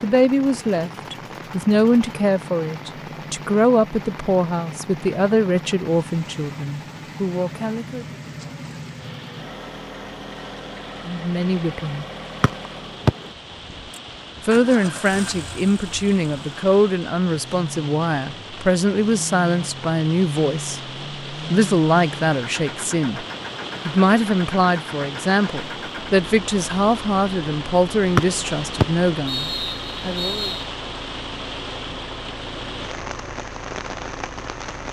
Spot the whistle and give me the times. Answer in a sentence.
The whistle can be heard from 12.4 to 13.2 s and from 28.1 to 30.6 s.